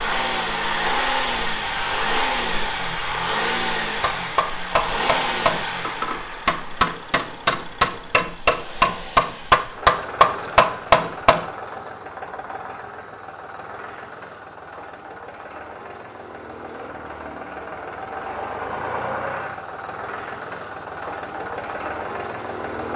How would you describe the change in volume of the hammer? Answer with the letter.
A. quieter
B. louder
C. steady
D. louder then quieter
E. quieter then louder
B.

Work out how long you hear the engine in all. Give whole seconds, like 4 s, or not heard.
23 s.